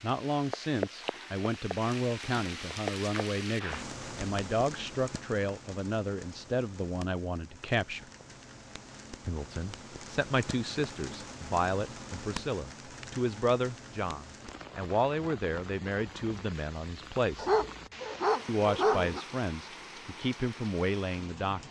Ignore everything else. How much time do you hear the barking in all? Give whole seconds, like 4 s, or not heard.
2 s.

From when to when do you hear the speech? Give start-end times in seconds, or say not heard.
0.0-8.1, 9.2-17.5, 18.4-21.6.